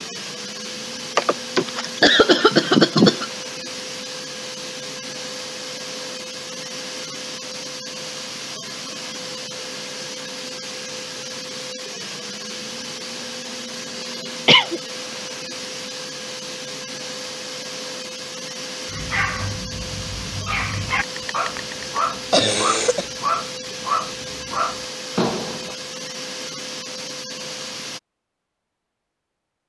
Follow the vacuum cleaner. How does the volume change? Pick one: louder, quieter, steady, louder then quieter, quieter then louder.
steady.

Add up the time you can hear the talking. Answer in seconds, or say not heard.
not heard.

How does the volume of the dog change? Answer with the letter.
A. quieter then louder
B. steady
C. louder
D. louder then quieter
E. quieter
C.